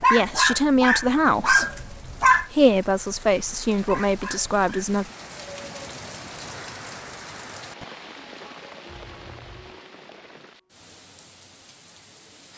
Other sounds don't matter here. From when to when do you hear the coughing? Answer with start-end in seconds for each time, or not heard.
8.8-9.8.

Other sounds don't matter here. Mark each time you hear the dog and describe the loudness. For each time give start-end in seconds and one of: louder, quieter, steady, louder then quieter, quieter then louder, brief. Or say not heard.
0.0-4.9 quieter then louder.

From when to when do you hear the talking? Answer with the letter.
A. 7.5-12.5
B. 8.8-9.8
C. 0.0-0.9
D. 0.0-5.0
D.